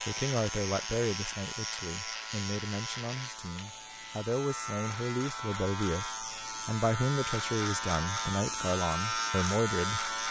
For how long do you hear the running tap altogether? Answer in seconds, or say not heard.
not heard.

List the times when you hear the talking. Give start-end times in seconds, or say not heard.
0.1-10.2.